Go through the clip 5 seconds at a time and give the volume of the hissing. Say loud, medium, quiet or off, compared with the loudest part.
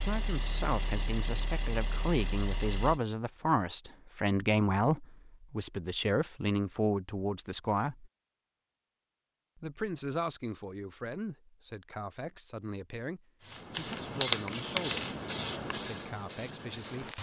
off, off, loud, medium.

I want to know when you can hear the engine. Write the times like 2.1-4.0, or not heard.
0.0-3.0.